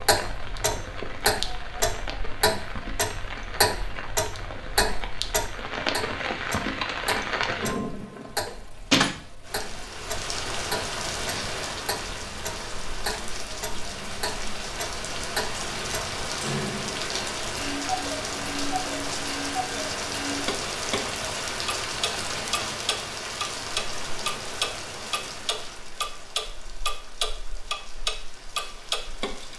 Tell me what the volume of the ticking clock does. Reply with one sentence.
The loudness of the ticking clock goes down, then up.